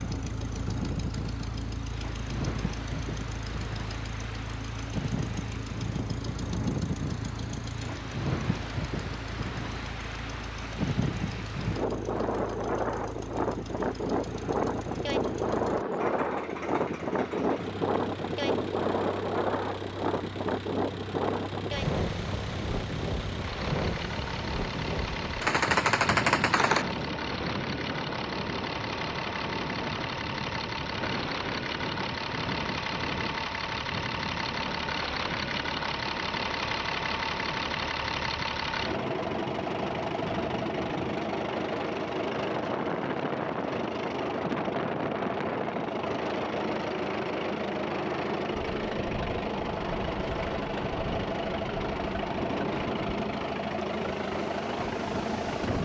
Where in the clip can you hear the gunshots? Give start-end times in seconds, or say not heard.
25.4-27.1.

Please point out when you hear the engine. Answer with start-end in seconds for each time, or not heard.
0.0-55.7.